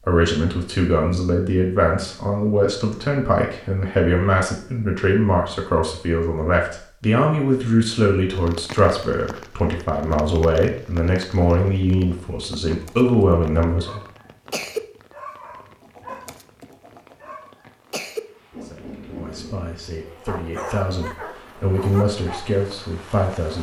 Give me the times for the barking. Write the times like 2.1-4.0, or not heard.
12.7-22.4.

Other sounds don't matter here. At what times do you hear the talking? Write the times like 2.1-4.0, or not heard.
0.1-14.0, 18.6-23.5.